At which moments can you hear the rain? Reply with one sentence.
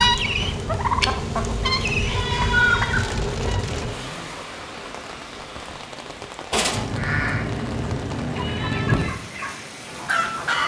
The rain can be heard from 0.0 to 10.6 s.